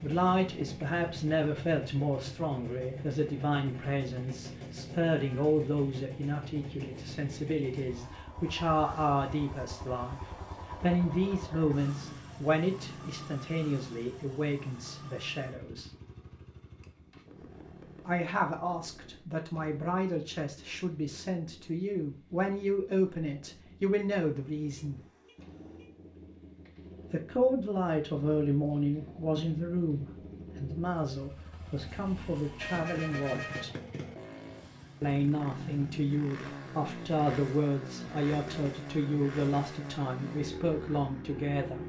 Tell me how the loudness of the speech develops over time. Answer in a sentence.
The volume of the speech stays about the same.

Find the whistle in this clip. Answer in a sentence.
The whistle can't be heard in this clip.